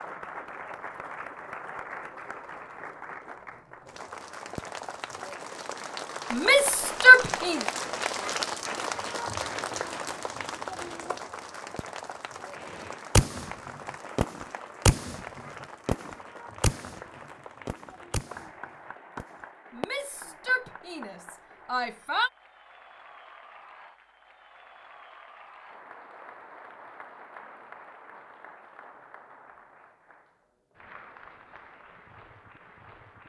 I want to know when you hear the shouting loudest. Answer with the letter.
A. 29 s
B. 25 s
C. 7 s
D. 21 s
C.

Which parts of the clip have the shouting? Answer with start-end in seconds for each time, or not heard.
6.3-7.7, 19.7-22.3.